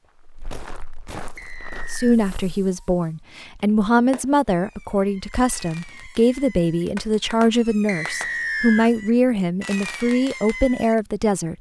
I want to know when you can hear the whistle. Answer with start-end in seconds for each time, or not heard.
1.4-2.2, 7.8-8.9.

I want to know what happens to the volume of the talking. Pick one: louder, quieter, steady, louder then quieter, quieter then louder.
steady.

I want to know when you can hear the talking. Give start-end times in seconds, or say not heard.
1.9-11.5.